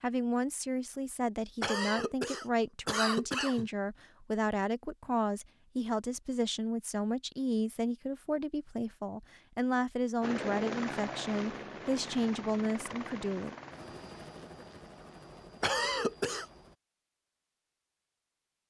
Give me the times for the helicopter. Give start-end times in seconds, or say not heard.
10.2-16.8.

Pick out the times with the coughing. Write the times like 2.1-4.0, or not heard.
1.6-3.7, 15.6-16.4.